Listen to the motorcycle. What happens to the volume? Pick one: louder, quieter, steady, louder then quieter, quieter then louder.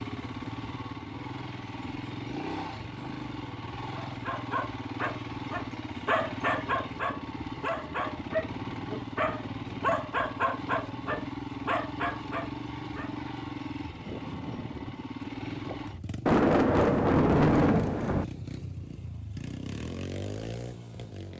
steady.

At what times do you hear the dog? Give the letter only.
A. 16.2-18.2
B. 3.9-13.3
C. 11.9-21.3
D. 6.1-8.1
B.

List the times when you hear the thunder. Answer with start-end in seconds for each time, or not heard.
16.2-18.2.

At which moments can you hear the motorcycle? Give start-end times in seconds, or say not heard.
0.0-21.3.